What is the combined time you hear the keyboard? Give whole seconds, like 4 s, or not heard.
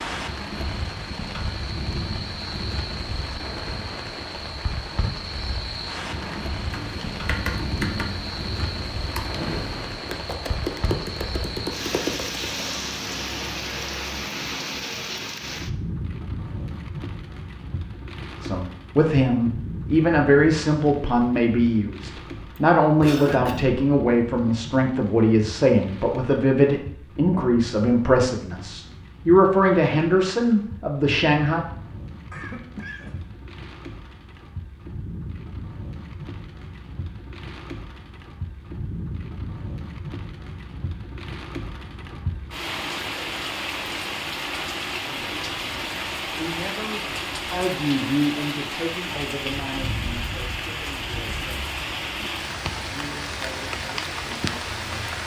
7 s.